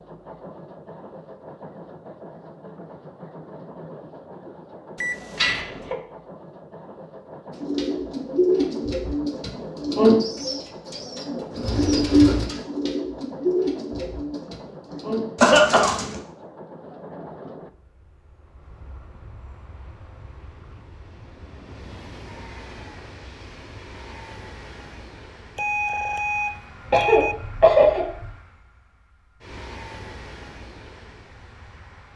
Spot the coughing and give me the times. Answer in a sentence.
The coughing can be heard from 5.3 to 6.0 s, from 15.4 to 16.0 s and from 26.9 to 28.2 s.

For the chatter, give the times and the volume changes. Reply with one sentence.
You can't hear the chatter here.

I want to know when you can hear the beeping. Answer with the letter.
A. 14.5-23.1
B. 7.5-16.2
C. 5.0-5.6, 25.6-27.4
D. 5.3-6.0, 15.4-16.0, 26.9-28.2
C.